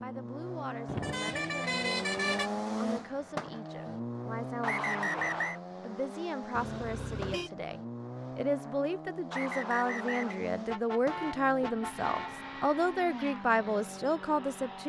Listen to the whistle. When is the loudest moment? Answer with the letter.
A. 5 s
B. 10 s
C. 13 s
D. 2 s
A.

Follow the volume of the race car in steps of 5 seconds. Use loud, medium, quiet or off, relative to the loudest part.
loud, medium, medium.